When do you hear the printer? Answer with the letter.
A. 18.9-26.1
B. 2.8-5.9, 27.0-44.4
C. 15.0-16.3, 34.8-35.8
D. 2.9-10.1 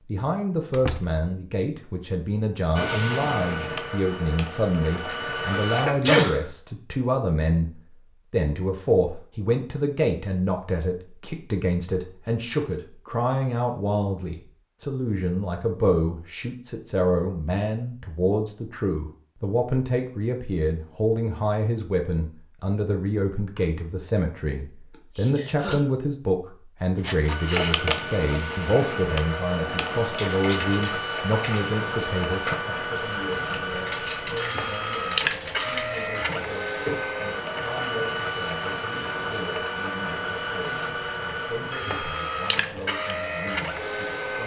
B.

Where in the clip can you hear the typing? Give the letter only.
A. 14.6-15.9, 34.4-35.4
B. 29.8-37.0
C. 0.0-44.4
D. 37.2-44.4
B.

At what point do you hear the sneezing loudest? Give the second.
6 s.